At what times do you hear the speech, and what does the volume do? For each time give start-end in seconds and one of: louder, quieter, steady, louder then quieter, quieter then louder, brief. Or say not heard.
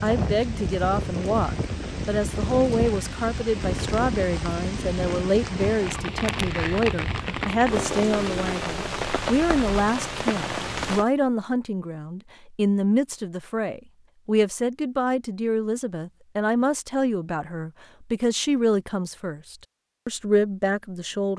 0.0-21.3 steady.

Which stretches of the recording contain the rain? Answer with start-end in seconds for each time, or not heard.
0.0-11.1.